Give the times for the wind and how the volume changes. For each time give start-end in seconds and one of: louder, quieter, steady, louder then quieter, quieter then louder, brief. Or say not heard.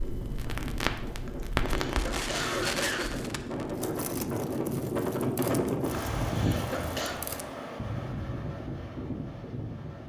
0.0-10.0 louder then quieter.